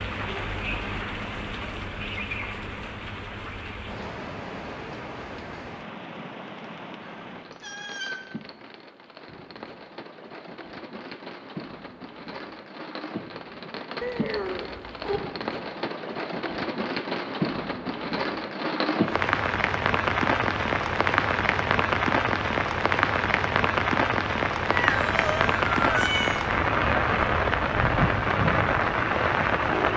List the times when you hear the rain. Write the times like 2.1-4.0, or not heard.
0.0-29.9.